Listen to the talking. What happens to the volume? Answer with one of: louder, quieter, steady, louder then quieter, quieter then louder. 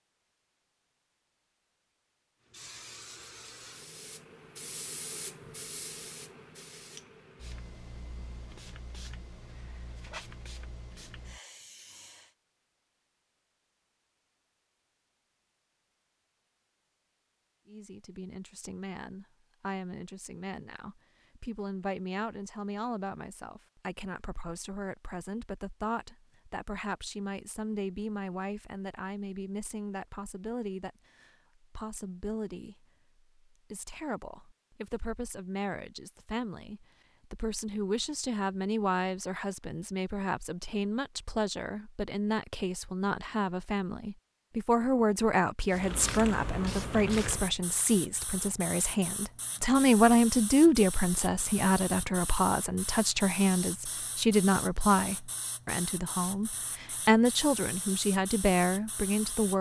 louder.